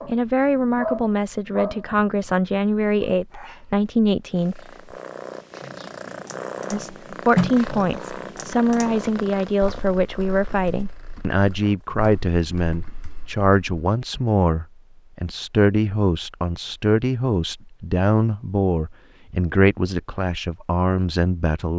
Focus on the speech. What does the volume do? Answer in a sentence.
The loudness of the speech stays about the same.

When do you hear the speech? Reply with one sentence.
The speech can be heard from 0.1 to 4.6 s and from 6.7 to 21.7 s.